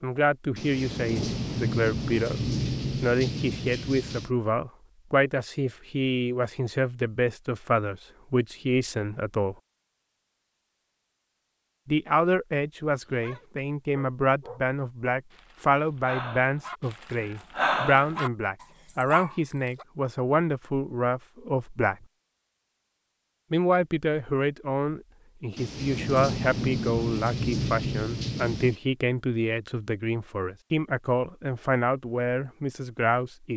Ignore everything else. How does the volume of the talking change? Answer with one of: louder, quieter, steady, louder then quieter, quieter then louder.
steady.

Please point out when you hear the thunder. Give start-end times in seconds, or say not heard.
0.6-4.3, 25.6-28.8.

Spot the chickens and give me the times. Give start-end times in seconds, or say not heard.
not heard.